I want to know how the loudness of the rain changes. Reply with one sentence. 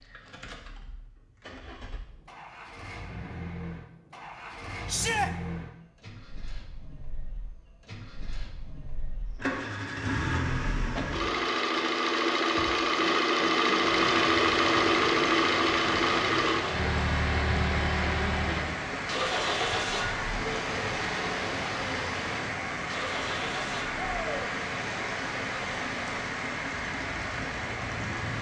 The loudness of the rain stays about the same.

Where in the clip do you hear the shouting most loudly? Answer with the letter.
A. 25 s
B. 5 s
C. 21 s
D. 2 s
B.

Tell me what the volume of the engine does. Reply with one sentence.
The volume of the engine goes up, then down.